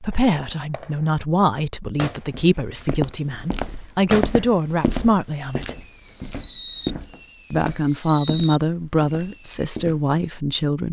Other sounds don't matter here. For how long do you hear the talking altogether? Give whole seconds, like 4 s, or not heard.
9 s.